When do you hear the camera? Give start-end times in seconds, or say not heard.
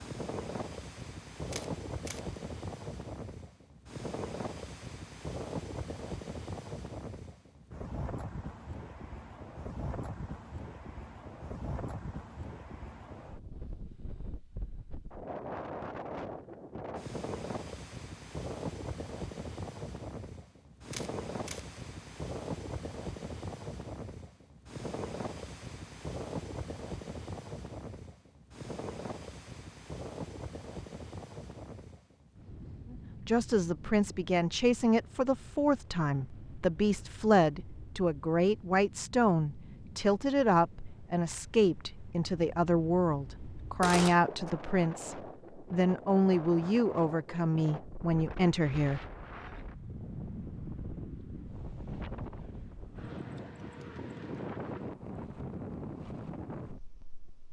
1.5-2.2, 20.9-21.6, 43.8-44.5.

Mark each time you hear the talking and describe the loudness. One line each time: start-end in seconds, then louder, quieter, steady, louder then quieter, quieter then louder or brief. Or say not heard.
32.9-49.0 steady.